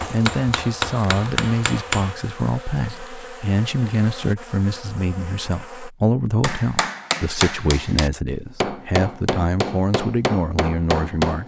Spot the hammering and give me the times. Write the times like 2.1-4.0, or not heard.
0.0-2.1, 6.4-11.4.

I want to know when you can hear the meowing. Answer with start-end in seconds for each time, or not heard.
not heard.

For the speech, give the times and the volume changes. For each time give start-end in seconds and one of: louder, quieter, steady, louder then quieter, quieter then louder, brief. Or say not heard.
0.1-11.4 steady.